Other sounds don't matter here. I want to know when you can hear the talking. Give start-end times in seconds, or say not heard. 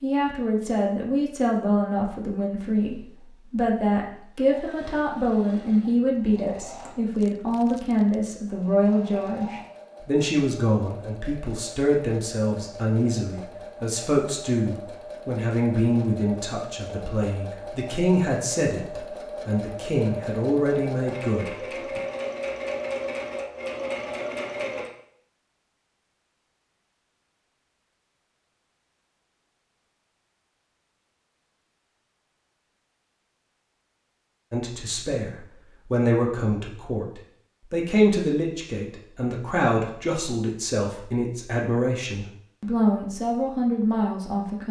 0.0-22.0, 34.5-44.6.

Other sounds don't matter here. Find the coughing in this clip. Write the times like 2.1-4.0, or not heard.
not heard.